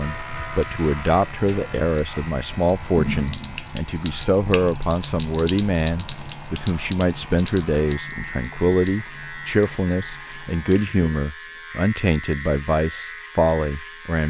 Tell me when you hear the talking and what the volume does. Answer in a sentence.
You can hear the talking from 0.0 to 14.2 s, at a steady volume.